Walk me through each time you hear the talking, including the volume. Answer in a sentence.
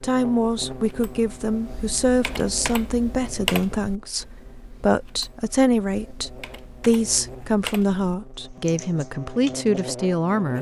You can hear the talking from 0.0 to 10.5 s, at a steady volume.